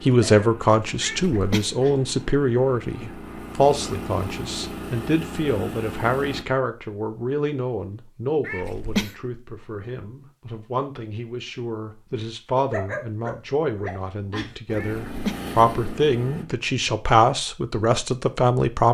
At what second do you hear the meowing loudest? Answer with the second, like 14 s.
9 s.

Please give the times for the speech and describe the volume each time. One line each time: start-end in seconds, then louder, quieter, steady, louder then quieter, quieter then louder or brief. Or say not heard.
0.0-18.8 quieter then louder.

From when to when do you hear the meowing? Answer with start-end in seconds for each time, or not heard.
1.0-1.6, 8.4-9.2, 14.8-15.4.